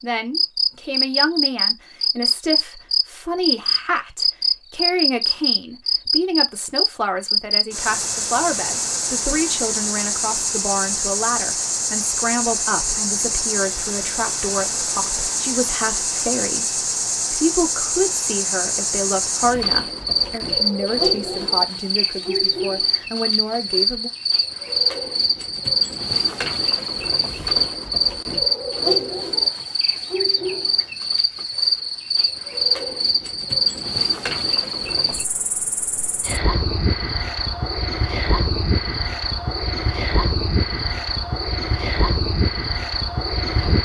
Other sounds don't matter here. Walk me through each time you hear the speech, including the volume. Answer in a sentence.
You can hear the speech from 0.0 to 24.1 s, at a steady volume.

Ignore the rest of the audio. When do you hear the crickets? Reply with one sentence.
You can hear the crickets from 0.3 to 43.8 s.